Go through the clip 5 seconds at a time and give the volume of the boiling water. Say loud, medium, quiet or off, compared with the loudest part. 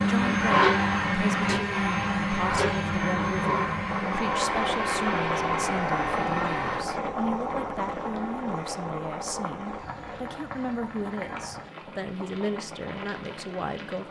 loud, loud, medium.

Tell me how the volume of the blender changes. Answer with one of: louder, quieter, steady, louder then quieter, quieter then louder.
quieter.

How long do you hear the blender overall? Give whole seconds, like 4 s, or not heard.
7 s.